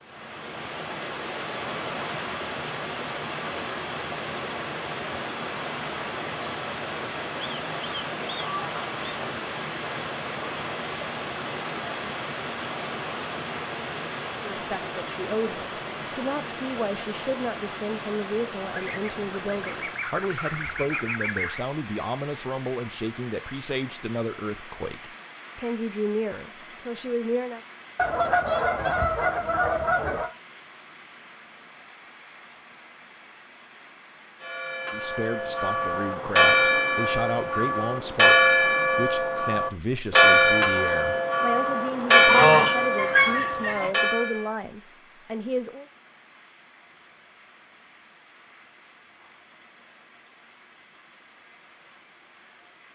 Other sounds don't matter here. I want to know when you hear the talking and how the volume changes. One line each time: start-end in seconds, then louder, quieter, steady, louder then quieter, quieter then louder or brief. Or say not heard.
14.4-27.6 steady
34.9-45.9 steady.